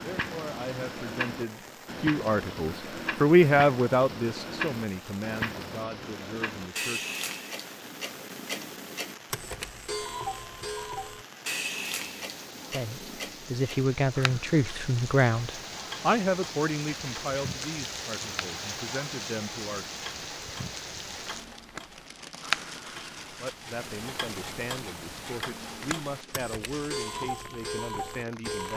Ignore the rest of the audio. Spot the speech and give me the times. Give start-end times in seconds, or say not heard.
0.0-7.2, 12.7-19.9, 23.4-28.7.